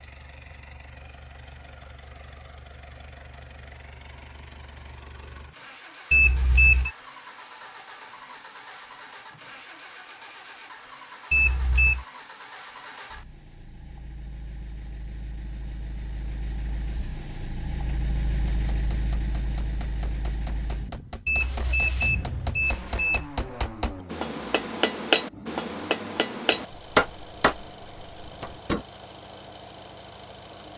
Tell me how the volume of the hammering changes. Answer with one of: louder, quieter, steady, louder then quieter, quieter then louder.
louder.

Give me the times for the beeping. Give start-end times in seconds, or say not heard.
6.1-6.9, 11.3-12.1, 21.2-23.2.